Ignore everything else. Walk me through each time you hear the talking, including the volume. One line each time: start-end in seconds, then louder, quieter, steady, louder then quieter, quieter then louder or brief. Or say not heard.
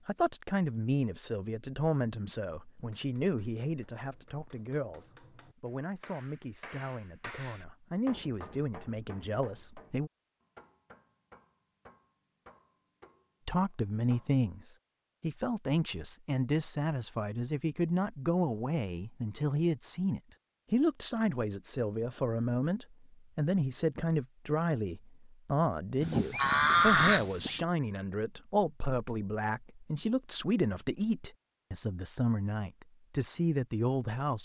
0.1-10.1 quieter then louder
13.4-34.4 steady.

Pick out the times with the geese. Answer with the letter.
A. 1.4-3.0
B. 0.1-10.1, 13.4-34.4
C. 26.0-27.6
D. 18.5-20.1
C.